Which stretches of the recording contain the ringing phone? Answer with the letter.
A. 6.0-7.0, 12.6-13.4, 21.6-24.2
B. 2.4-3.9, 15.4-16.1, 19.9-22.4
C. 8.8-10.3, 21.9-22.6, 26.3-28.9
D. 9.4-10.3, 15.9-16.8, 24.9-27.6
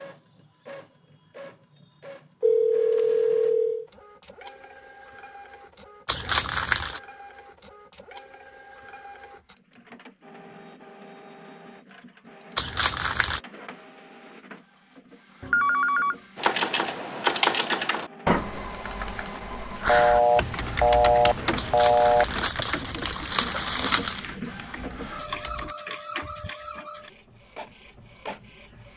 B.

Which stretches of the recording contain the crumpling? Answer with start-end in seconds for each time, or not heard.
6.0-7.0, 12.6-13.4, 21.6-24.2.